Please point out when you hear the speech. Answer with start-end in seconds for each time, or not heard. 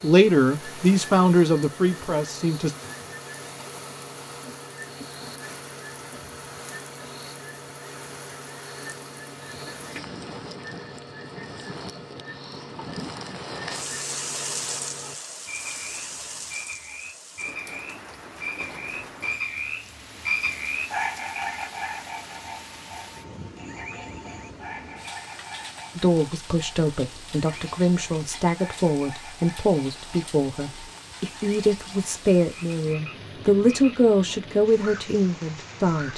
0.0-2.8, 25.9-36.1.